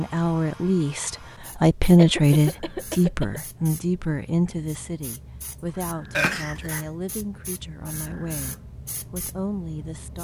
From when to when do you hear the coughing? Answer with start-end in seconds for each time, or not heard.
1.9-3.4, 6.1-6.8.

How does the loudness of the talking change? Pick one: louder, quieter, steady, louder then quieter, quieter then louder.
quieter.